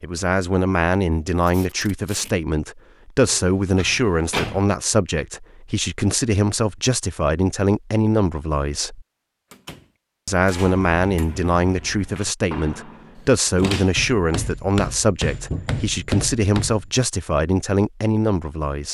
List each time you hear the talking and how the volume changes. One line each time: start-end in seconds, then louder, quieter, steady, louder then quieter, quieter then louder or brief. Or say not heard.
0.0-9.1 steady
10.2-18.8 steady.